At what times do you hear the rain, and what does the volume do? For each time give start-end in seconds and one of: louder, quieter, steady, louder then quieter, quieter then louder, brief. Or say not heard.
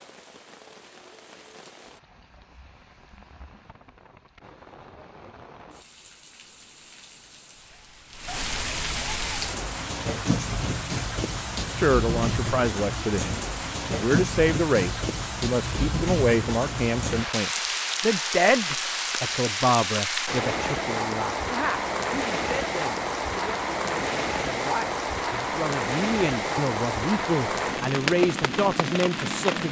0.0-29.6 louder.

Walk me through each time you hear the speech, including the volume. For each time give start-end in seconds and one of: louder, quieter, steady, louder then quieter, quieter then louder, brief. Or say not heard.
11.8-29.6 quieter then louder.